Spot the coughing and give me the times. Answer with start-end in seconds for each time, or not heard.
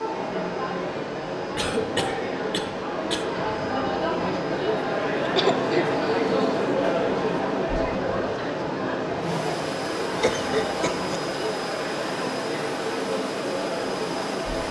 1.6-3.2, 5.2-6.4, 10.2-11.2.